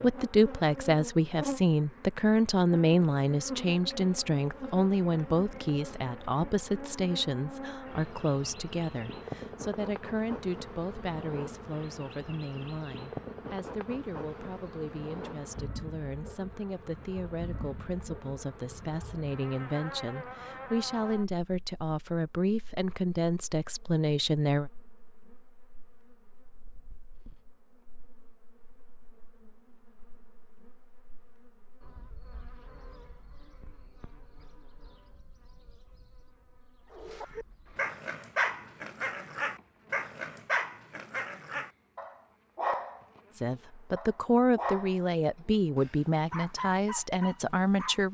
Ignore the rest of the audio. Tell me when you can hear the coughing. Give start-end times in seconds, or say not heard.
not heard.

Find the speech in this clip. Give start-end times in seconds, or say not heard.
0.0-24.7, 43.3-48.1.